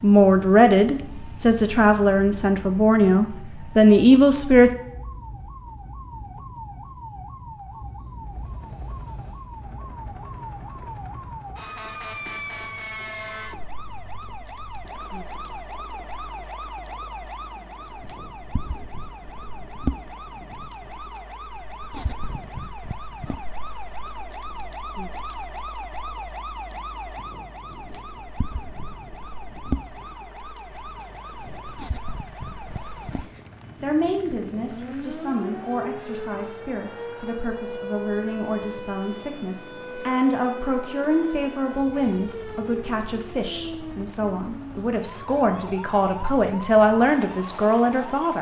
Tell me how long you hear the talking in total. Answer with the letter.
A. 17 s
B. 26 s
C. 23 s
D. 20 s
D.